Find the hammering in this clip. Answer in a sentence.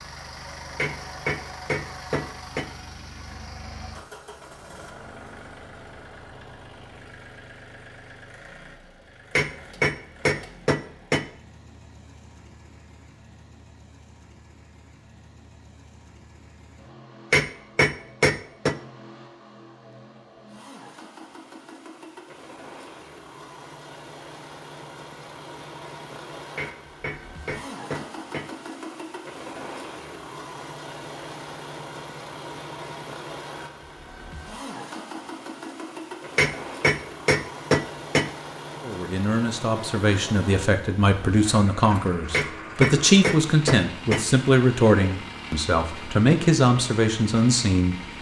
The hammering can be heard from 0.8 to 2.6 s, from 9.3 to 11.2 s, from 17.3 to 18.8 s, from 26.6 to 28.5 s, from 36.4 to 38.3 s and from 42.3 to 44.2 s.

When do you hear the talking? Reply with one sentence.
You can hear the talking from 38.8 to 48.0 s.